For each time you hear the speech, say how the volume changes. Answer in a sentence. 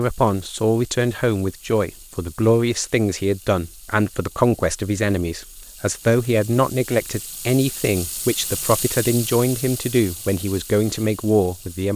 You can hear the speech from 0.0 to 11.9 s, at a steady volume.